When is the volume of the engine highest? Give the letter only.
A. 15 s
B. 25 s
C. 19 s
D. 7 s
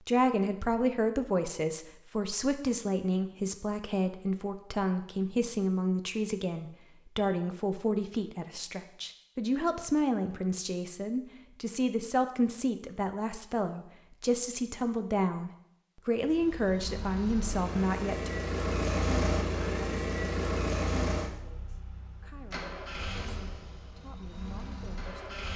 C.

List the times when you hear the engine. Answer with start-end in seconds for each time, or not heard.
16.2-25.5.